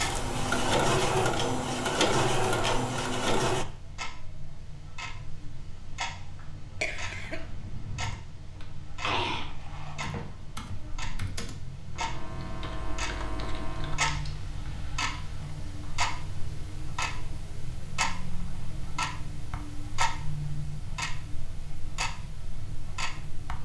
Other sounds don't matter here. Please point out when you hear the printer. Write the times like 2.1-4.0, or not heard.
0.0-3.6.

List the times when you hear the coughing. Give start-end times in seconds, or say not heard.
6.8-7.5.